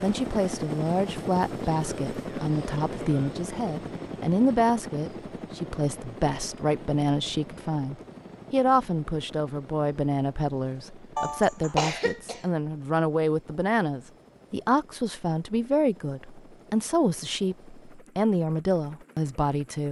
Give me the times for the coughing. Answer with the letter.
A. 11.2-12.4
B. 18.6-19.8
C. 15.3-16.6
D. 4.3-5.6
A.